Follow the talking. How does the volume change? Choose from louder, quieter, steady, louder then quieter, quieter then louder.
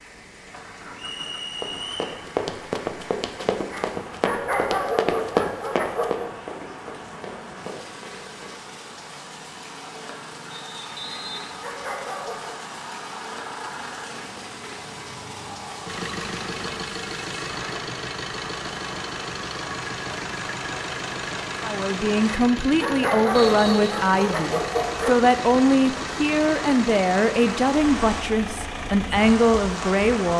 steady.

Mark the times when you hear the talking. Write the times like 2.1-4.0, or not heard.
21.6-30.3.